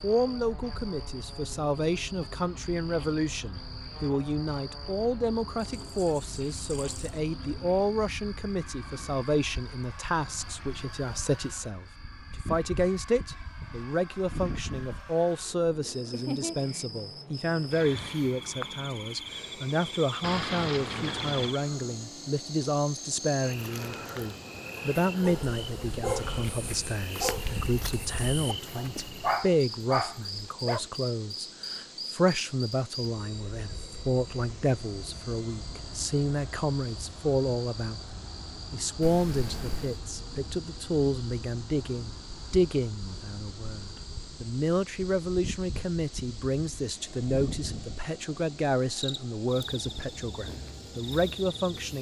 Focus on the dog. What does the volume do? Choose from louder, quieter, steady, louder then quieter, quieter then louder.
quieter then louder.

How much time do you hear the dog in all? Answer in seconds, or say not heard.
6 s.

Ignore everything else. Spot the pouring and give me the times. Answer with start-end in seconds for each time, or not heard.
5.6-7.2, 20.2-21.6, 39.0-40.0.